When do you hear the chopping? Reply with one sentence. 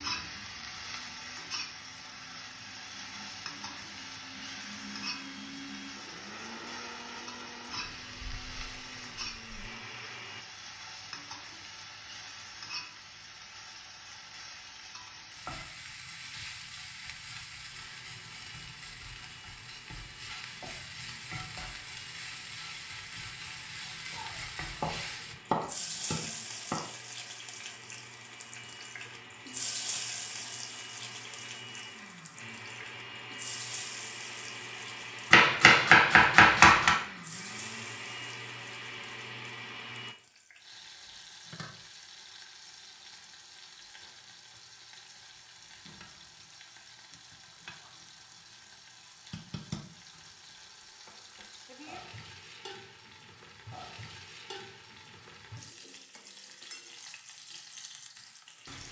The chopping can be heard from 24.1 to 26.9 s and from 35.3 to 37.0 s.